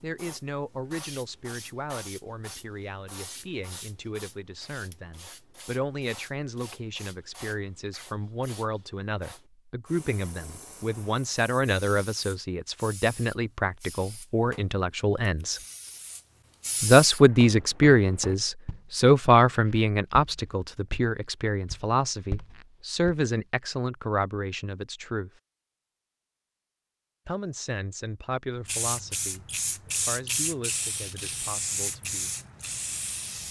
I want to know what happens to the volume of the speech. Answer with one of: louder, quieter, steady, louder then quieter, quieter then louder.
louder then quieter.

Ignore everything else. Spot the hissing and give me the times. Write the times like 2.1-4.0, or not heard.
0.0-17.2, 28.6-33.4.